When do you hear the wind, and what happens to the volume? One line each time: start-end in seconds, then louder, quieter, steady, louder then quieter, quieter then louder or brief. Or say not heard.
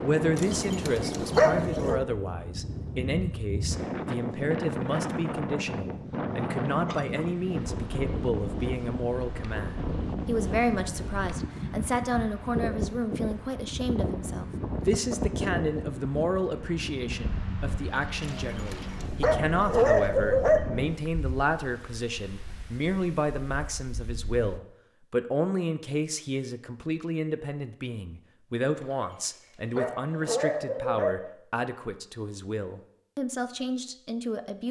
0.0-24.6 quieter.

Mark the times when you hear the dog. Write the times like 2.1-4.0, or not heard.
0.3-2.0, 18.2-20.7, 28.8-31.2.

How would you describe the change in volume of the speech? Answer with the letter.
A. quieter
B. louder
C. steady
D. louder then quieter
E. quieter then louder
C.